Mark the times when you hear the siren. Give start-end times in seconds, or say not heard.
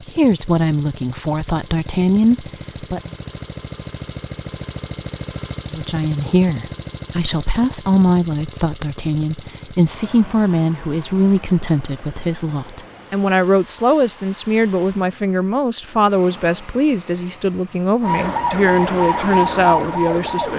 18.0-20.5.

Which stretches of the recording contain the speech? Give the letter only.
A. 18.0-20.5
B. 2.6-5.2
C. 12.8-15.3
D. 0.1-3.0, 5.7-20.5
D.